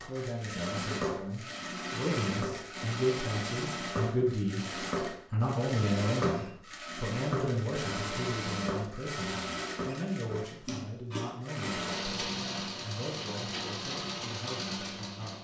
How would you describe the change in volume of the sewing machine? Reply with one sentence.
The volume of the sewing machine stays about the same.